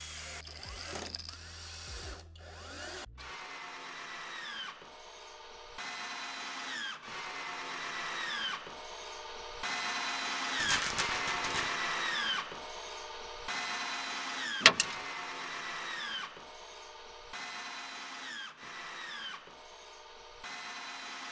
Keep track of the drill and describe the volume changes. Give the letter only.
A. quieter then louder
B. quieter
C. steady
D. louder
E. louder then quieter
E.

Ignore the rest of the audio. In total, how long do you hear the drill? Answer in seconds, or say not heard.
21 s.